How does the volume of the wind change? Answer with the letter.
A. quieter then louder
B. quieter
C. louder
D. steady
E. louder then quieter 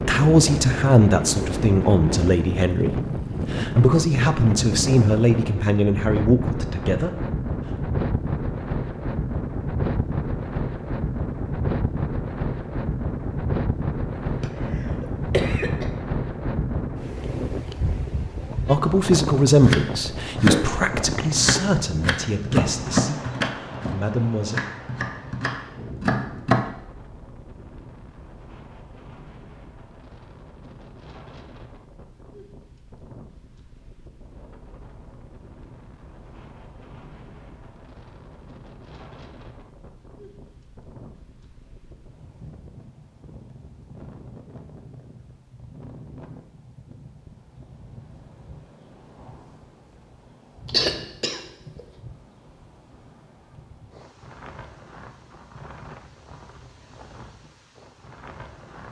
B.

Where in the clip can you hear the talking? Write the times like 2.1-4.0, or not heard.
0.0-7.2, 18.6-24.6.